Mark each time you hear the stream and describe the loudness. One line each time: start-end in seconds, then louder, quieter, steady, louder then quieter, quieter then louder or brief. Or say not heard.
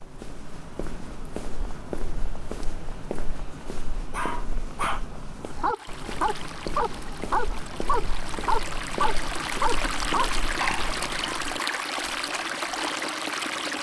5.7-13.7 louder.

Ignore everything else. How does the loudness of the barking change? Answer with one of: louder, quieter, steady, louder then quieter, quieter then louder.
steady.